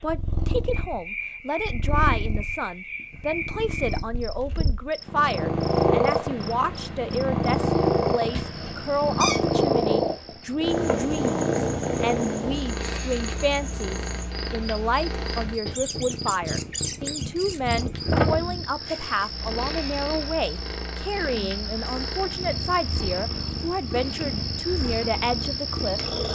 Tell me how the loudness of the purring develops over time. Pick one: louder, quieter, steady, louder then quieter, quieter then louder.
louder then quieter.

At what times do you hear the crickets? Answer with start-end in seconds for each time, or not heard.
0.1-26.3.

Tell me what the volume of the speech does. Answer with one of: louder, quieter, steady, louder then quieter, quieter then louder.
steady.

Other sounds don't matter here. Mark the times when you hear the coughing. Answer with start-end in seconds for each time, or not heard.
not heard.